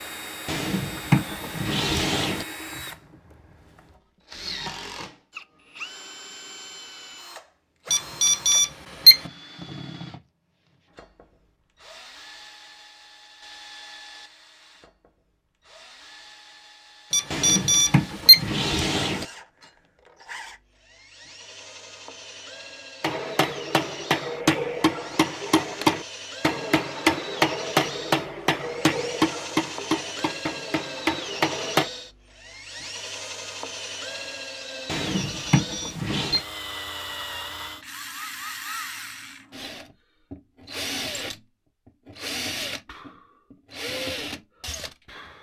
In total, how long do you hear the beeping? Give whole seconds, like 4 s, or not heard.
4 s.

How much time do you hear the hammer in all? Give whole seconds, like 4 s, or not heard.
9 s.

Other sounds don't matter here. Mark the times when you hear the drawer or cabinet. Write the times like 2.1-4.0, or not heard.
0.5-2.5, 17.3-19.2, 34.9-36.4.